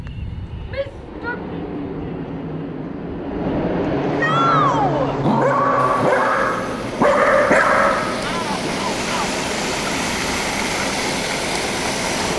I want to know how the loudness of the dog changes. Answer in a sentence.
The loudness of the dog goes up.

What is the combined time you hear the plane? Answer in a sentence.
You can hear the plane for 12 seconds altogether.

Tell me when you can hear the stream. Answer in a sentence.
The stream can be heard from 5.8 to 12.3 s.